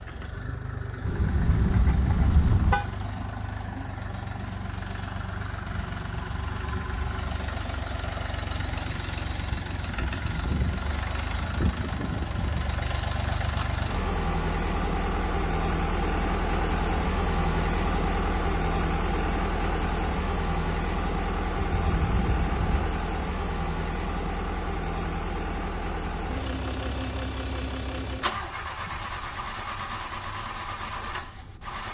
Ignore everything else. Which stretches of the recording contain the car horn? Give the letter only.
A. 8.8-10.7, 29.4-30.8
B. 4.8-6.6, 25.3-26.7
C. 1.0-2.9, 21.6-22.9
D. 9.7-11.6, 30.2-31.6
C.